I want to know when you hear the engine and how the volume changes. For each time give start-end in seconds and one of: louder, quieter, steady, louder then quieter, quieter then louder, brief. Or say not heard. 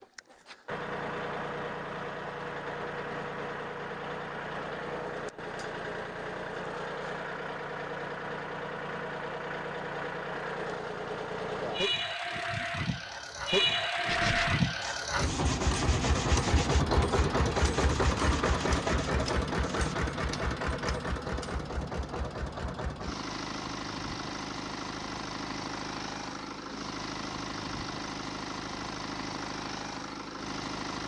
0.0-31.0 louder then quieter.